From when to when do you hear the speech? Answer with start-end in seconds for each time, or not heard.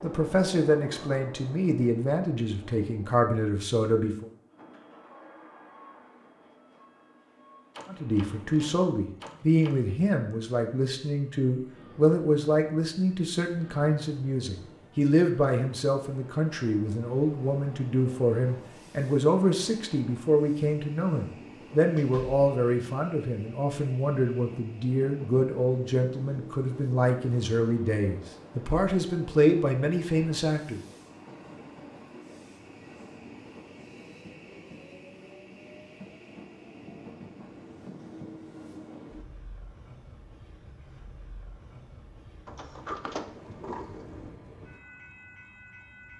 0.0-4.2, 7.9-30.8.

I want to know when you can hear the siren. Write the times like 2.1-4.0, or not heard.
not heard.